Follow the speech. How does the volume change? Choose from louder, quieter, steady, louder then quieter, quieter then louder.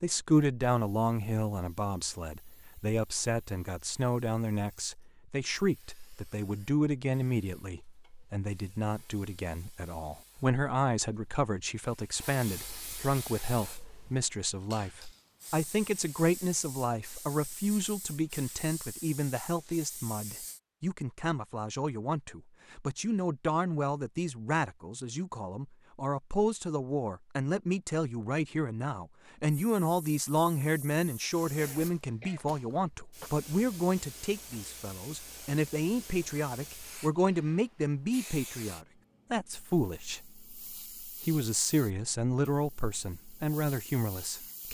steady.